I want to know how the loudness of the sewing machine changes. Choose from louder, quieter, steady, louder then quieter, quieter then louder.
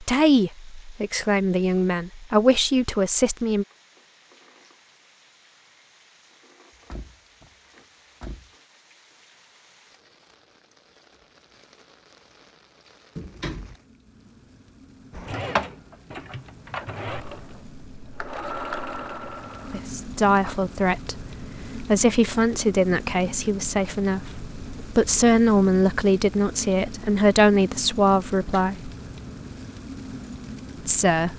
quieter then louder.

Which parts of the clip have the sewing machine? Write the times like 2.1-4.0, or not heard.
15.1-19.9.